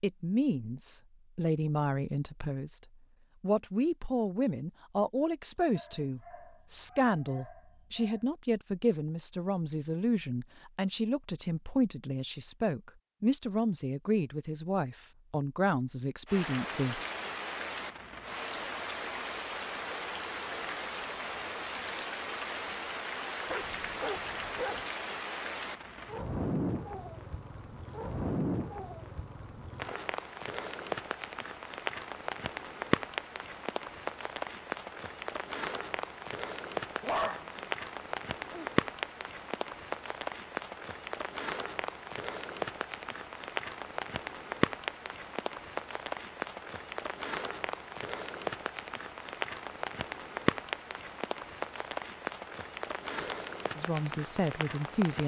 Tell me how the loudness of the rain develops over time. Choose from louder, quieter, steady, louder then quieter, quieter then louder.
steady.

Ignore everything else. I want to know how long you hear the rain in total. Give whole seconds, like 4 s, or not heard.
39 s.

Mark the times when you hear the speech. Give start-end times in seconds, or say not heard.
0.0-2.8, 3.4-17.0, 53.8-55.2.